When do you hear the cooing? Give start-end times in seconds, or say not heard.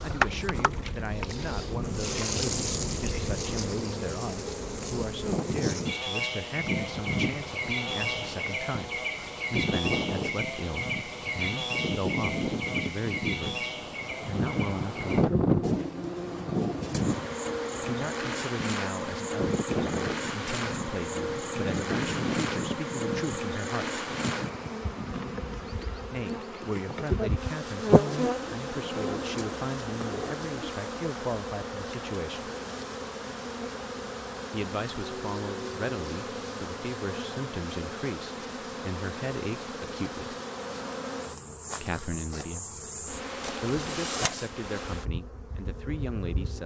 15.6-17.2, 28.1-30.8.